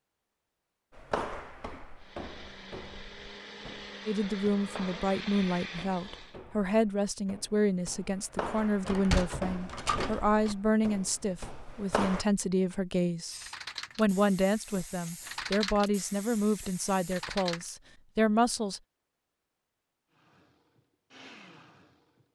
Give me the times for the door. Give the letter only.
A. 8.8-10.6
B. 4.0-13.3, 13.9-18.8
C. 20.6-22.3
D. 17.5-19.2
A.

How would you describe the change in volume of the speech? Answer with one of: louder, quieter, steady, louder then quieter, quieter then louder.
steady.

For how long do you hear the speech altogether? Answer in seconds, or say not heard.
14 s.